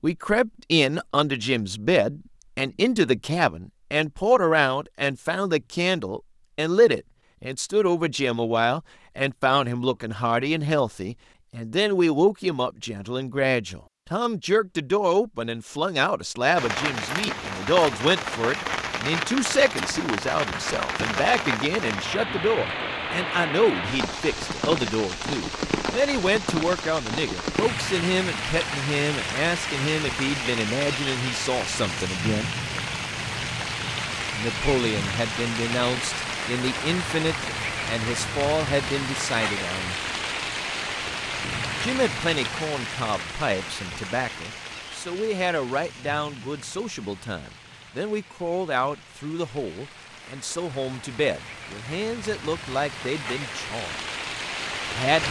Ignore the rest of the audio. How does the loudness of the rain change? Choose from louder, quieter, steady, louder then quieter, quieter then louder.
quieter.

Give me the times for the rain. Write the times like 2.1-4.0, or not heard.
16.6-55.2.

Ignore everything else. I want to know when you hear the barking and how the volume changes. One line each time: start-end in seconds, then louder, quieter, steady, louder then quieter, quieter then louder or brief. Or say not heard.
not heard.